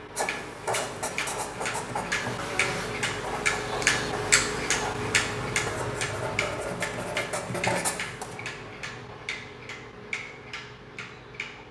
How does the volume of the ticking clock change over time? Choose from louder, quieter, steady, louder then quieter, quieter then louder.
louder then quieter.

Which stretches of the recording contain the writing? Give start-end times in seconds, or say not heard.
0.1-8.4.